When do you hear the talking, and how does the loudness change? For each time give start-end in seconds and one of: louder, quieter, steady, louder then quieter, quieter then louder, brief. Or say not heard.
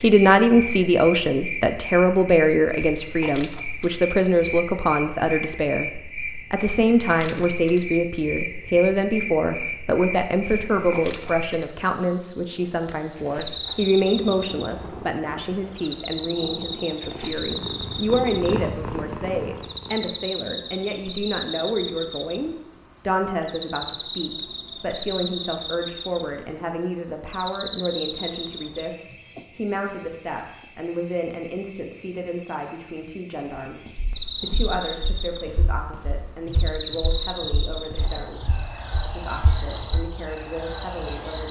0.0-33.8 quieter
34.4-41.4 steady.